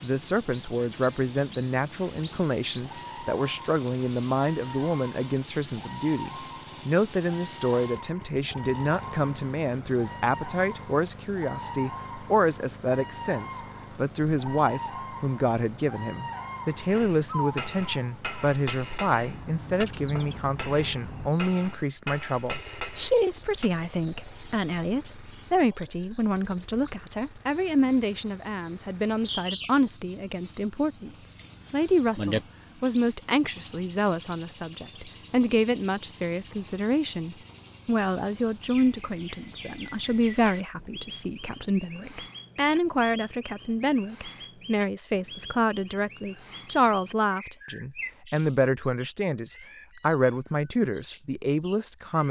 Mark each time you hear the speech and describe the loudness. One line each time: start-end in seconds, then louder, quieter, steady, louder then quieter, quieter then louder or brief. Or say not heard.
0.0-52.2 steady.